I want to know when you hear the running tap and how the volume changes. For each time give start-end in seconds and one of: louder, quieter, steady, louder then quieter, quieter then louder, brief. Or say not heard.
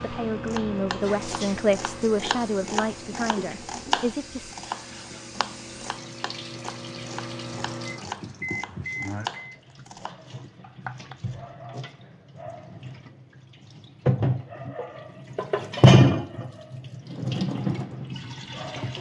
0.0-18.9 louder.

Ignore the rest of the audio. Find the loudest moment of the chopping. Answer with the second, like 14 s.
4 s.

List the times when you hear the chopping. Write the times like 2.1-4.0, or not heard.
0.5-11.2.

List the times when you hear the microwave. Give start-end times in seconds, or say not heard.
0.0-9.6.